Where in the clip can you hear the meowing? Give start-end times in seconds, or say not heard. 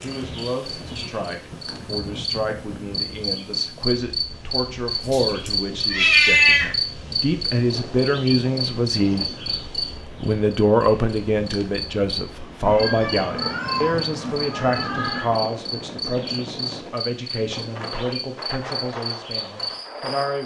5.0-6.7, 12.7-15.3.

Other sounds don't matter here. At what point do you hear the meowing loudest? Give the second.
6 s.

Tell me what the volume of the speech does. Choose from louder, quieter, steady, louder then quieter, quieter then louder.
louder then quieter.